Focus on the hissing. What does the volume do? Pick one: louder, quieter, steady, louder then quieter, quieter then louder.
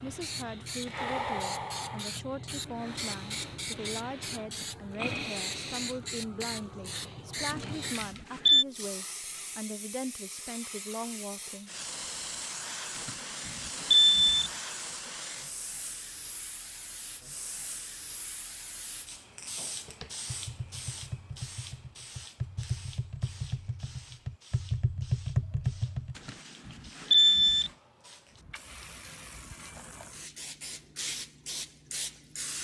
quieter.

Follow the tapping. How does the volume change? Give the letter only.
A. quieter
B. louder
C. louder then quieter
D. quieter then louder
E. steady
B.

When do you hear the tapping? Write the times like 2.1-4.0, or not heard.
19.9-26.2.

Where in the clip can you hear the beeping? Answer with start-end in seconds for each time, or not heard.
7.5-8.7, 12.9-14.5, 26.1-27.7.